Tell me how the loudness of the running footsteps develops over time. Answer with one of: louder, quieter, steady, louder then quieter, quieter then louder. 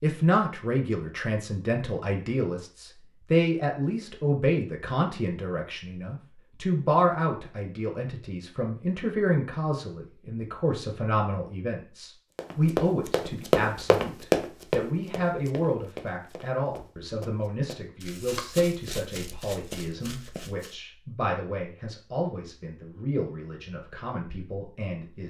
quieter.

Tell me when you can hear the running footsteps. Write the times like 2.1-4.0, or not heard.
12.3-20.8.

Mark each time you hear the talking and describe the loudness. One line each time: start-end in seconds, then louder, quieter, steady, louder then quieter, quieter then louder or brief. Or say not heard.
0.0-25.2 quieter.